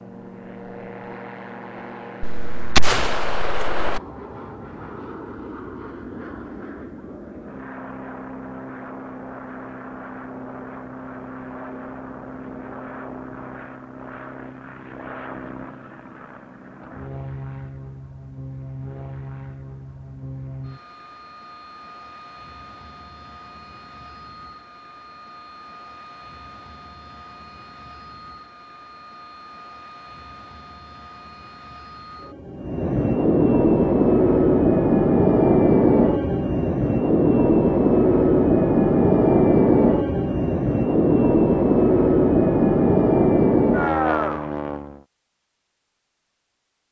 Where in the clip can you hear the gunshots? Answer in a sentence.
You can hear the gunshots from 2.2 to 4.0 s.